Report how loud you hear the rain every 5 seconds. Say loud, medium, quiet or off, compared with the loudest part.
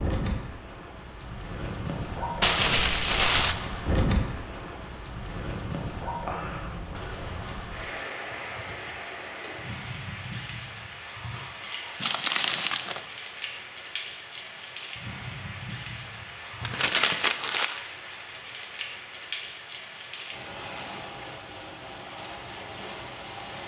loud, loud, medium, medium, medium.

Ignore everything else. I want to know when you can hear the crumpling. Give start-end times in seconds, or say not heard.
2.4-3.5, 12.0-13.1, 16.6-17.8.